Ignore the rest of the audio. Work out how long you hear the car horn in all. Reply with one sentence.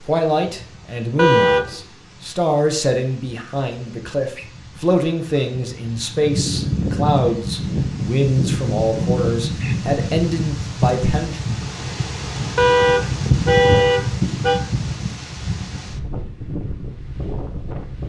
You can hear the car horn for 3 seconds altogether.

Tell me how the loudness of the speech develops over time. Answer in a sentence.
The volume of the speech stays about the same.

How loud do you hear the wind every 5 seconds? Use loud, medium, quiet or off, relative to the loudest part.
quiet, loud, loud, medium.